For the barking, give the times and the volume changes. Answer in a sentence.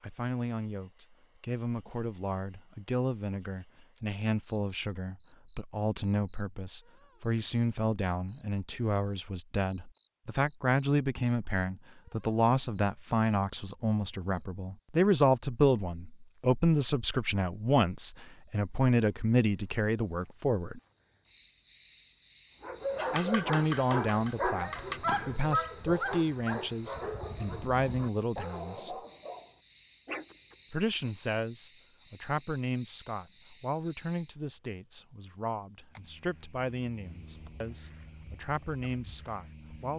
You can hear the barking from 22.6 to 30.9 s, getting quieter.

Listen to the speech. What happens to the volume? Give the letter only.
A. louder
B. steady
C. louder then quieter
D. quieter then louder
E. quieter
C.